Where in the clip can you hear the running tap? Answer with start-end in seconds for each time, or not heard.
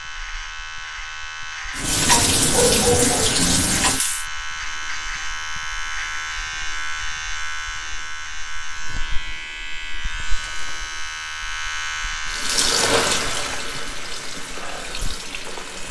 1.8-4.2, 12.2-15.8.